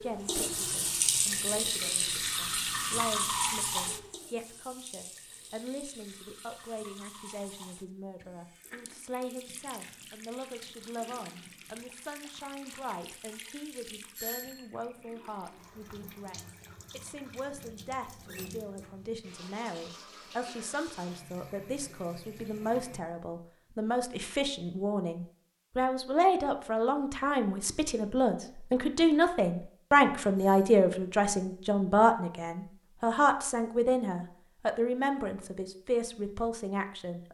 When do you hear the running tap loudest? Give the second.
3 s.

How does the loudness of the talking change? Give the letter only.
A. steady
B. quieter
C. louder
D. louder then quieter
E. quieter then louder
C.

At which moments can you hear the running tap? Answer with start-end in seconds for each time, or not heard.
0.0-23.0.